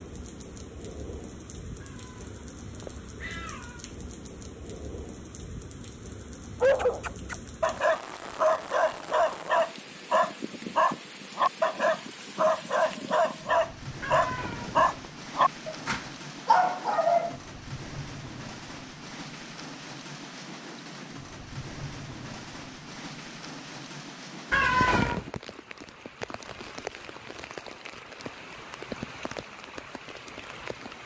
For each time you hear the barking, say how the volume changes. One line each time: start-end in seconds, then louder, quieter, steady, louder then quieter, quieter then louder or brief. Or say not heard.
6.6-17.4 steady.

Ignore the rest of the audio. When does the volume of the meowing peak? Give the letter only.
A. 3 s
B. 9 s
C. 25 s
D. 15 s
C.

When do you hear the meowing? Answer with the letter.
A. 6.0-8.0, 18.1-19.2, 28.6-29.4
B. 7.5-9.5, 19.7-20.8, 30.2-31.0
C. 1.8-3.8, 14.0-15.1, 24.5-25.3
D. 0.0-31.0
C.